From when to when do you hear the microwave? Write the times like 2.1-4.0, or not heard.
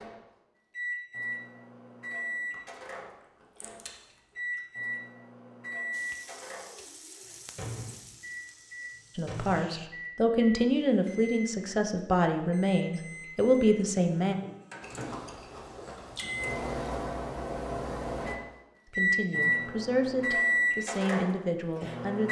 0.0-22.2.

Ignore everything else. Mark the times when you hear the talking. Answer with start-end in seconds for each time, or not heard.
9.2-14.3, 18.9-22.2.